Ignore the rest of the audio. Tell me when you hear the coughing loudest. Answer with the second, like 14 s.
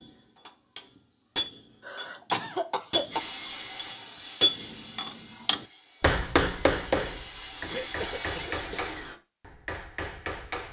2 s.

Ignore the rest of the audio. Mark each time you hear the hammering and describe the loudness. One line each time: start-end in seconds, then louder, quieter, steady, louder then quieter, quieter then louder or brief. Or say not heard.
0.0-10.6 louder then quieter.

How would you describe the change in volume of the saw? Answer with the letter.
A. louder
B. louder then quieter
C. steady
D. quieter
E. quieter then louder
E.